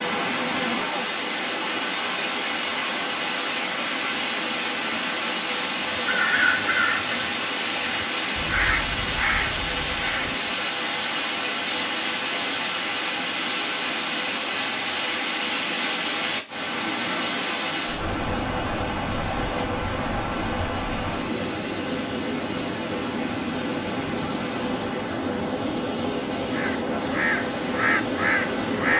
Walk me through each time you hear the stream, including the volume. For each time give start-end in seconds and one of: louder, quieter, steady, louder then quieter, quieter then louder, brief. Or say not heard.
0.0-28.9 steady.